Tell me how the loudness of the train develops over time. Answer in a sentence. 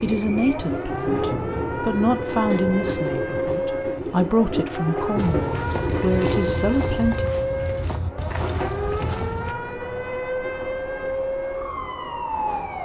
The loudness of the train goes down.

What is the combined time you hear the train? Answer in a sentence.
You can hear the train for 13 seconds altogether.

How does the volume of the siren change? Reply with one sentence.
The volume of the siren stays about the same.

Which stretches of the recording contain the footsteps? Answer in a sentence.
You can hear the footsteps from 5.2 to 9.6 s.